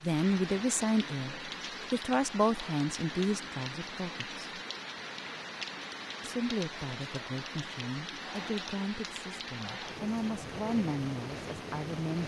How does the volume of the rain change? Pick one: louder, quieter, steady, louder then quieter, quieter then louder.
steady.